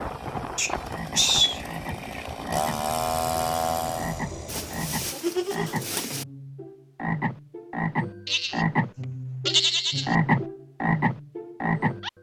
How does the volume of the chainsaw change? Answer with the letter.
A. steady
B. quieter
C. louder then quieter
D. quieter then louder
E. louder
E.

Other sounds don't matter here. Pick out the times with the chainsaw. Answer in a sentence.
You can hear the chainsaw from 0.0 to 4.2 s.